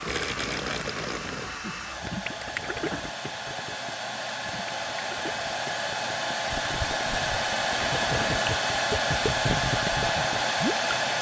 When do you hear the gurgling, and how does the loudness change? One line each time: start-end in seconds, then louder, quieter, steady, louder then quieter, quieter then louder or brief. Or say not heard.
0.0-11.1 quieter then louder.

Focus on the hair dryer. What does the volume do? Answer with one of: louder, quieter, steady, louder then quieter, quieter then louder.
louder.